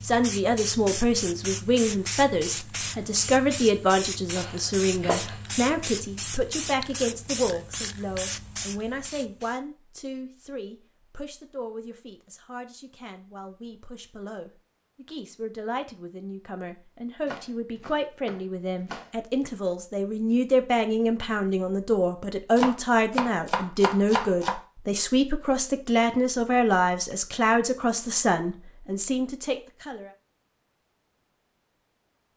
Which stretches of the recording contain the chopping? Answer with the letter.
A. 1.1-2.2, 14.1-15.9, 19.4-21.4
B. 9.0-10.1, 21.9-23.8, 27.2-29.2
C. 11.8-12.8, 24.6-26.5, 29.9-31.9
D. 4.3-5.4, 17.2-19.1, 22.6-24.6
D.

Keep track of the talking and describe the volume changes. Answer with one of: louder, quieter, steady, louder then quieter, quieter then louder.
quieter then louder.